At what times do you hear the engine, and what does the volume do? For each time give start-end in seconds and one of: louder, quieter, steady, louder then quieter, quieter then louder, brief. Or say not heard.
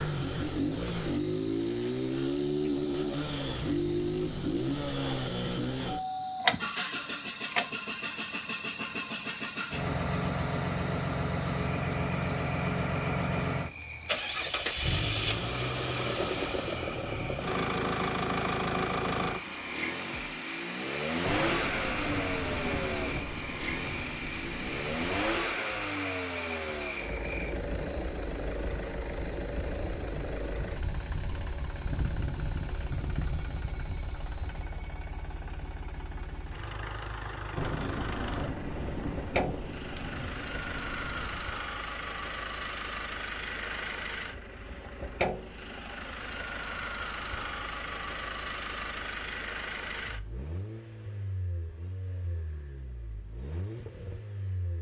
0.0-54.7 quieter.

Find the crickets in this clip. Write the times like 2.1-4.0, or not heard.
0.0-34.7.